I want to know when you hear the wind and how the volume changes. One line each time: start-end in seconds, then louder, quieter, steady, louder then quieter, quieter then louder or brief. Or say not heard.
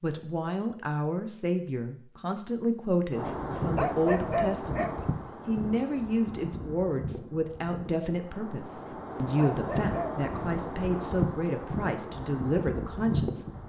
3.1-13.6 quieter then louder.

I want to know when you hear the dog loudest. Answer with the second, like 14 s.
4 s.